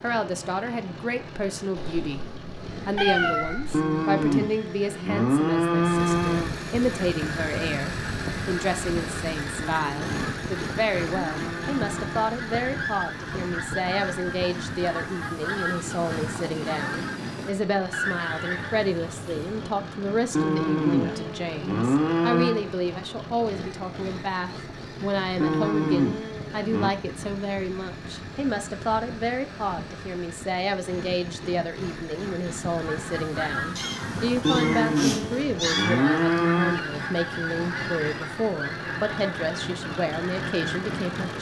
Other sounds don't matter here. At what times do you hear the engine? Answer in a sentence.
The engine can be heard from 0.0 to 41.3 s.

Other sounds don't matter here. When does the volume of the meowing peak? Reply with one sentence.
The volume of the meowing peaks at 3 seconds.